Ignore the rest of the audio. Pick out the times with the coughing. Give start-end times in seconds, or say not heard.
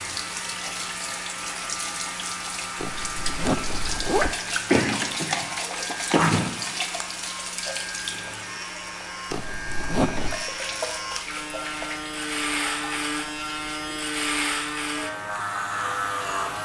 4.7-6.5.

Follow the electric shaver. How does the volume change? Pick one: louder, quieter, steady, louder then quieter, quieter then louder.
louder.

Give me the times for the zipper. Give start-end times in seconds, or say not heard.
2.8-4.3, 9.3-10.4.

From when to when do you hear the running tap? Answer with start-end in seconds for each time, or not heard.
0.0-16.5.